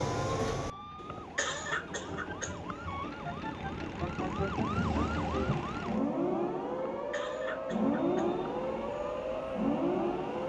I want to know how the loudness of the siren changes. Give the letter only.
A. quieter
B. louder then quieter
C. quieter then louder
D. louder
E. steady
D.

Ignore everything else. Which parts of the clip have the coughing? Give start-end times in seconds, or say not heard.
1.1-3.3, 6.9-8.3.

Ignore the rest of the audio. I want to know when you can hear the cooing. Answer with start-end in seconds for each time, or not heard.
not heard.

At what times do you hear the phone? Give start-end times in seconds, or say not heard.
not heard.